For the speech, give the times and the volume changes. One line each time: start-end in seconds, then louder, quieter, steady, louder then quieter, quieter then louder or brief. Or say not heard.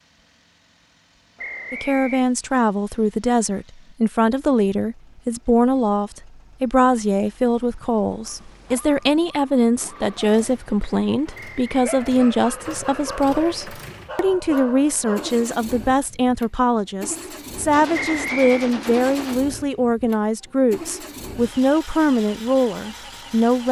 1.7-23.6 steady.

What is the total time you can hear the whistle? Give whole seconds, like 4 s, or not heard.
2 s.